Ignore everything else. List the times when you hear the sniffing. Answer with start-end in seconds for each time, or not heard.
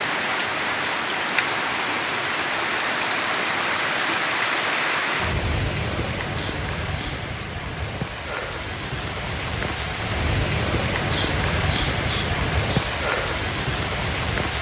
0.8-1.9, 6.3-7.2, 11.1-12.9.